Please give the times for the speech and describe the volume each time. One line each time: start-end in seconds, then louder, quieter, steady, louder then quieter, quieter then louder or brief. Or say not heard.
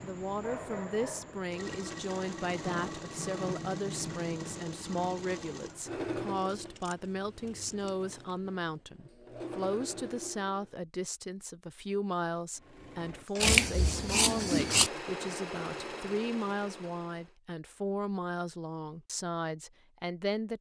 0.0-20.5 steady.